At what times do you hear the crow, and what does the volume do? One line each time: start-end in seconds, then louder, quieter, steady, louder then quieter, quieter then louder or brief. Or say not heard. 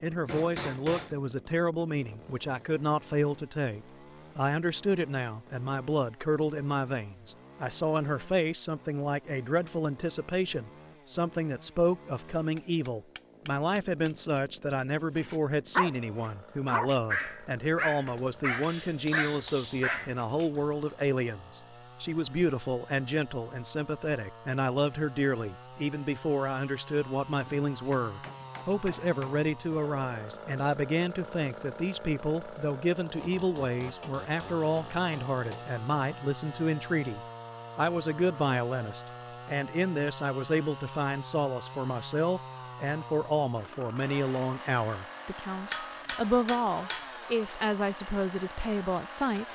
not heard.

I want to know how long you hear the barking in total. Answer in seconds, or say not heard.
5 s.